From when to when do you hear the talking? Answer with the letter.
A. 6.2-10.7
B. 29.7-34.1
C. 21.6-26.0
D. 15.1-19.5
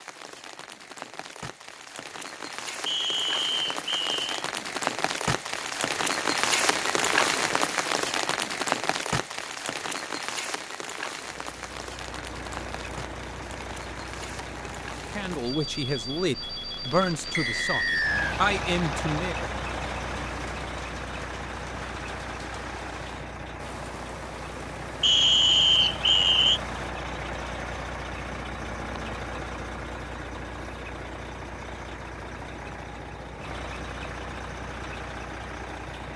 D.